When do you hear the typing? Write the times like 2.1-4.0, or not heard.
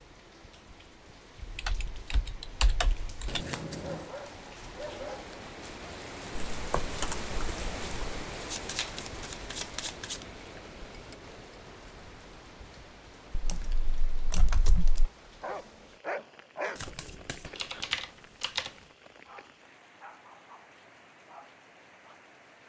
1.4-3.4, 6.3-8.0, 13.3-15.1, 17.6-18.7.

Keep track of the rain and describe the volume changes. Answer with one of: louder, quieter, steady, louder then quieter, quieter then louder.
louder then quieter.